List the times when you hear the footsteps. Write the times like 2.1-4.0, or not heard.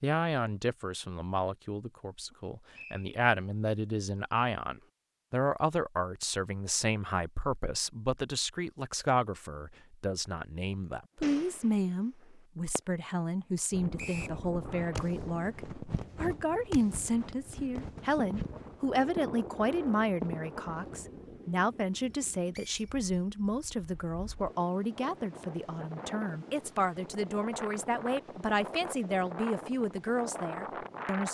not heard.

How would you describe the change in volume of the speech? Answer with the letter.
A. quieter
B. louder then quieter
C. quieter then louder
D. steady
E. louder
D.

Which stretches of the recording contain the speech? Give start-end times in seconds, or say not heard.
0.0-31.2.